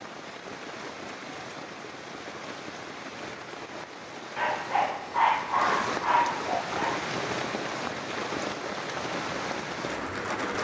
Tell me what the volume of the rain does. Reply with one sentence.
The volume of the rain goes up.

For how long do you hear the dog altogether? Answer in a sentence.
You can hear the dog for 3 seconds altogether.